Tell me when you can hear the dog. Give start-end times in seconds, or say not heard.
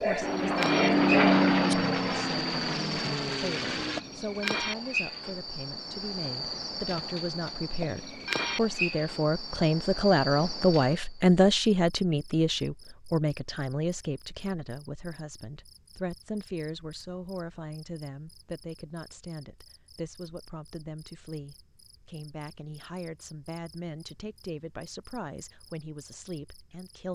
0.0-1.8.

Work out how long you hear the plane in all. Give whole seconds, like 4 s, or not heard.
4 s.